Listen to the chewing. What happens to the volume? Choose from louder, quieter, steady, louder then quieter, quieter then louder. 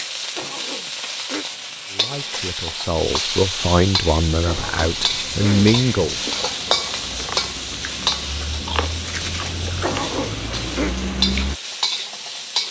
louder.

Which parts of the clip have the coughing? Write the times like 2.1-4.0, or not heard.
0.3-1.4, 4.5-5.8, 9.8-10.9.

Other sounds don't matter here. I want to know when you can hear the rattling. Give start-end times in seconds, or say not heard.
9.0-9.5.